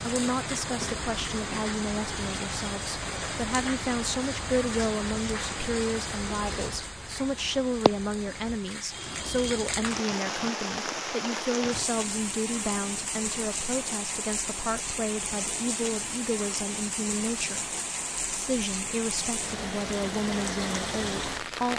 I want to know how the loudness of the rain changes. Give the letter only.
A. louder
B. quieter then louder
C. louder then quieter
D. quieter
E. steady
E.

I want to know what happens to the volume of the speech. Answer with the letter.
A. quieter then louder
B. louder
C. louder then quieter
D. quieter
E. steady
E.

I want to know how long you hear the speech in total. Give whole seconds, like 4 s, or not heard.
22 s.